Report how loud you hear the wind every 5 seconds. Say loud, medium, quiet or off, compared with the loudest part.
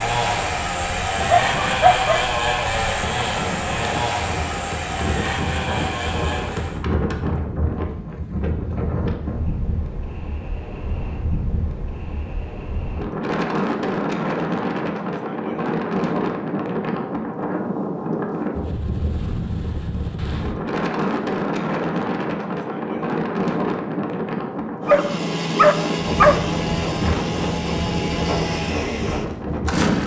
medium, loud, loud, loud, loud, loud.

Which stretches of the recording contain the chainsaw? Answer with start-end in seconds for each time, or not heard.
0.0-6.8, 24.8-30.0.